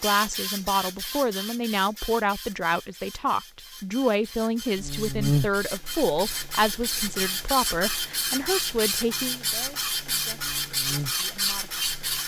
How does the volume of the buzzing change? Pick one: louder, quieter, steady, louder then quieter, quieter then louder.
quieter then louder.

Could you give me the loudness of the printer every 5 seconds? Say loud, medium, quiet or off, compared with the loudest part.
medium, loud, loud.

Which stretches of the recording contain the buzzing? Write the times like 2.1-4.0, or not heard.
4.8-12.2.